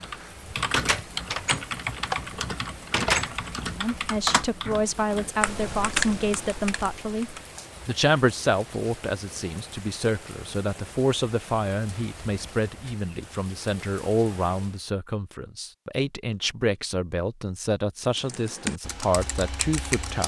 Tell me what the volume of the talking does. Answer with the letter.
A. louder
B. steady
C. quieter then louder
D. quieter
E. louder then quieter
B.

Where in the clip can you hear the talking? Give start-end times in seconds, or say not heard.
3.8-20.2.